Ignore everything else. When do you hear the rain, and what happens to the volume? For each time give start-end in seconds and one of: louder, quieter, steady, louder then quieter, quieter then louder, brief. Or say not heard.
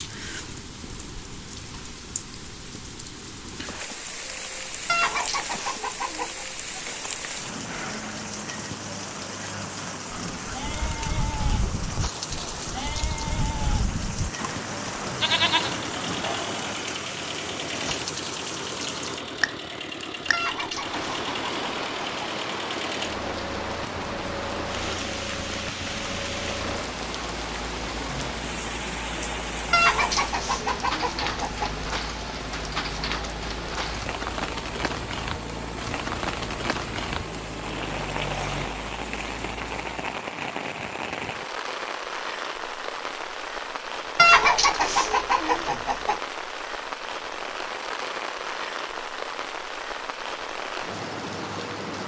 0.0-52.0 steady.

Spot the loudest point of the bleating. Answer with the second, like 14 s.
15 s.